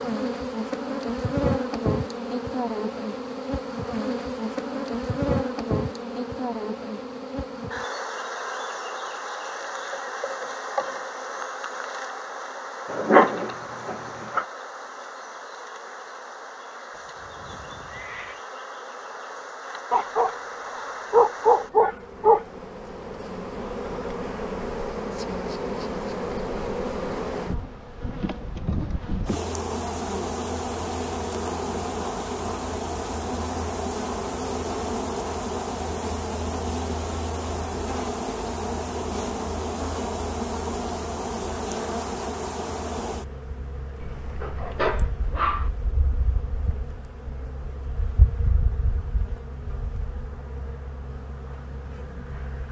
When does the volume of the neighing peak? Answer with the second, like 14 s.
18 s.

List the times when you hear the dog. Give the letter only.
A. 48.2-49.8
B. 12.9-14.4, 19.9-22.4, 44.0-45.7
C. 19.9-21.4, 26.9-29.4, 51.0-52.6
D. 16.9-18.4
B.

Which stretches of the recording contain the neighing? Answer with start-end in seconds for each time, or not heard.
16.9-18.4.